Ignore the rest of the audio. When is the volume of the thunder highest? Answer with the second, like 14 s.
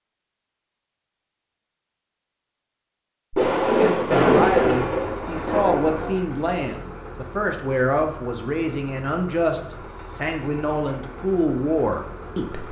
4 s.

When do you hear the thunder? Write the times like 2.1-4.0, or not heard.
3.3-6.2.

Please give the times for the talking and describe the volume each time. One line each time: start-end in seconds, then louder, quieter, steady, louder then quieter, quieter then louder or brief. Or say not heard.
3.8-12.6 steady.